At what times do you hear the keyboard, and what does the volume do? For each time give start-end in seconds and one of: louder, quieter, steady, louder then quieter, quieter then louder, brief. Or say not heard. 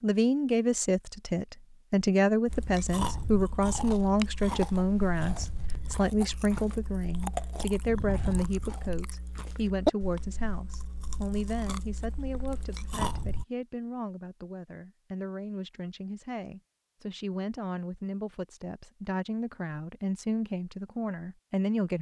not heard.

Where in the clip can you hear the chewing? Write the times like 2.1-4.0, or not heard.
2.5-13.4.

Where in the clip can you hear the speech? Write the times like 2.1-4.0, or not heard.
0.0-21.9.